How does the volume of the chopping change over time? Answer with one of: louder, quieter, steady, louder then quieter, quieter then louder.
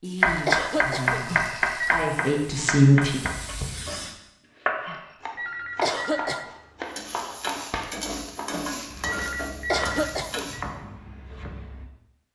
quieter.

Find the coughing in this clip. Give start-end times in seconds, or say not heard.
0.5-1.2, 5.8-6.5, 9.7-10.5.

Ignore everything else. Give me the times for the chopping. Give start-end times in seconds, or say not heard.
0.2-11.9.